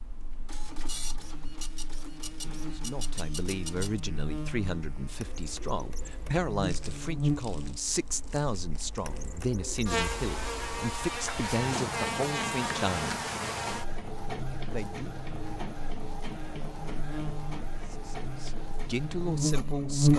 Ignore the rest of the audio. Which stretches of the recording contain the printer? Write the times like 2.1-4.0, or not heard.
0.0-20.1.